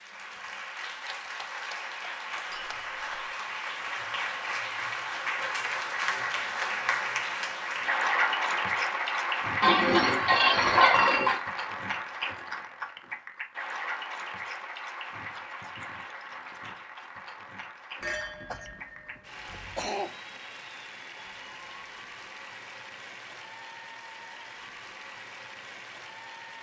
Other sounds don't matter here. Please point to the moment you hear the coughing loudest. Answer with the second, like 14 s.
20 s.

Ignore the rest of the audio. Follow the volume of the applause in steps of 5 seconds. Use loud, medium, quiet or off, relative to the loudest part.
medium, loud, medium, quiet, quiet, quiet.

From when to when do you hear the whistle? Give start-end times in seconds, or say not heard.
not heard.